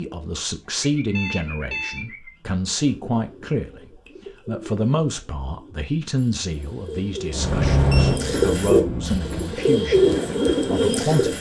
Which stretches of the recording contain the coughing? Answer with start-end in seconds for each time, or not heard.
not heard.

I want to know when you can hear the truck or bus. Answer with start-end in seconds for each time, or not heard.
7.3-9.4.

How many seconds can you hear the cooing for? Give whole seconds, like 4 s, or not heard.
11 s.